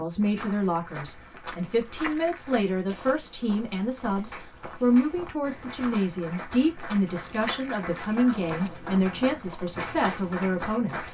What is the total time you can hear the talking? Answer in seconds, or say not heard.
11 s.